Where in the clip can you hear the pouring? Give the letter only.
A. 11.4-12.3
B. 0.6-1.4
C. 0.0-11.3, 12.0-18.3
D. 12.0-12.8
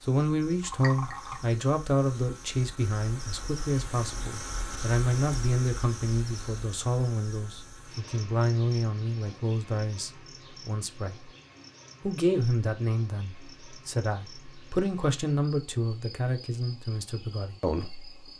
B.